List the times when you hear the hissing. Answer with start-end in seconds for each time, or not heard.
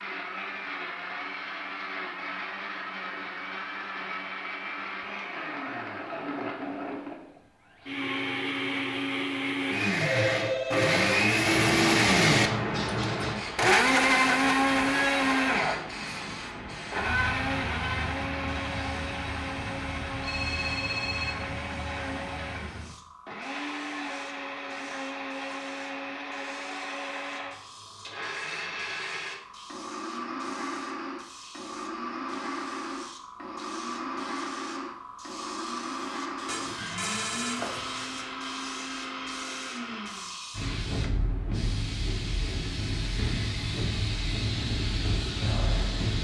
10.8-46.1.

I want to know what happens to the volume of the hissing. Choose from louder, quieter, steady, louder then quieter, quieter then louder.
quieter then louder.